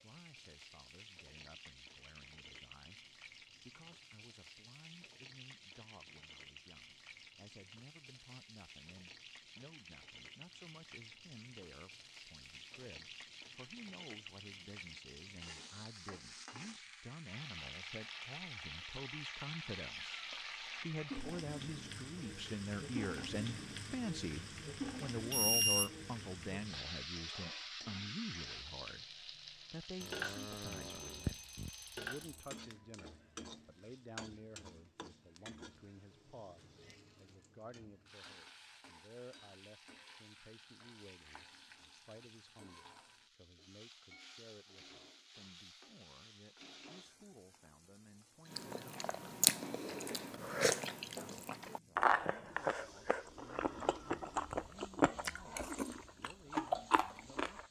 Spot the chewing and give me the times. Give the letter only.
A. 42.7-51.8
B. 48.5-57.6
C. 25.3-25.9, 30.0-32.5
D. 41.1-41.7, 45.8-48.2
B.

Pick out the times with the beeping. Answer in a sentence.
The beeping can be heard from 25.3 to 25.9 s and from 30.0 to 32.5 s.